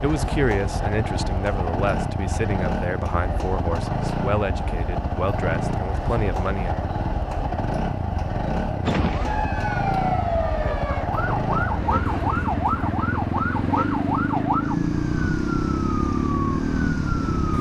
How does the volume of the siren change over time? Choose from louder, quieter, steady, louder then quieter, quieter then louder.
steady.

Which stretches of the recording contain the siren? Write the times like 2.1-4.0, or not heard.
8.8-17.5.